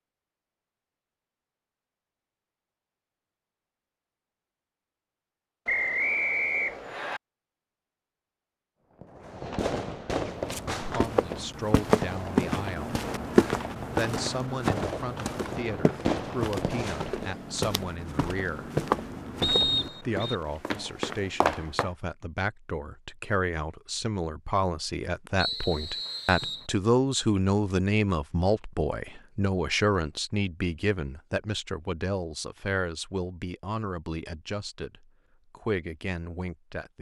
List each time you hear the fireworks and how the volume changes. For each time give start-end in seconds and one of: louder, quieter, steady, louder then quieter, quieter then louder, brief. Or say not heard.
8.9-17.4 quieter then louder.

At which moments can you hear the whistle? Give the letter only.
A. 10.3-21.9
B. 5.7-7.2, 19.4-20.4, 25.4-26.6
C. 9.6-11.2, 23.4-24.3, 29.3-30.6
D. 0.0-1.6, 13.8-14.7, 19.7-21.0
B.